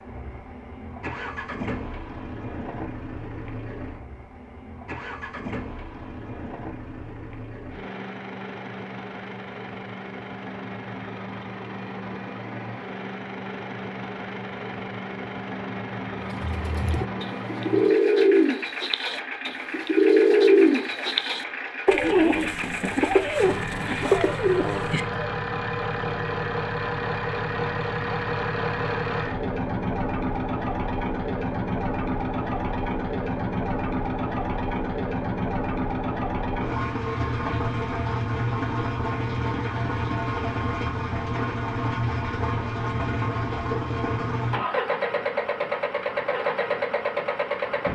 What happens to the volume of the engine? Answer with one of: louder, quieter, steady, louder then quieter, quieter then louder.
louder.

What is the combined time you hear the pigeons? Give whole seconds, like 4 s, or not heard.
9 s.